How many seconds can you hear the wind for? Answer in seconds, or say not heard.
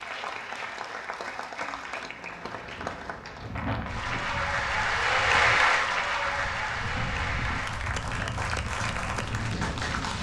7 s.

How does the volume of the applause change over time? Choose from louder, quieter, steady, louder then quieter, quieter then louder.
louder then quieter.